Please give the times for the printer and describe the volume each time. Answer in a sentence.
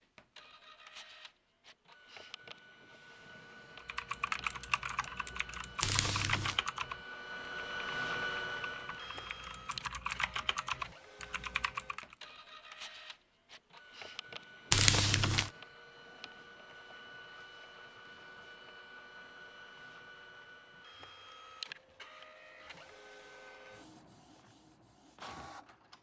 The printer can be heard from 0.0 to 25.9 s, getting louder then quieter.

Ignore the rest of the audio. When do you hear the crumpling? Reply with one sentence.
You can hear the crumpling from 5.8 to 6.6 s and from 14.7 to 15.5 s.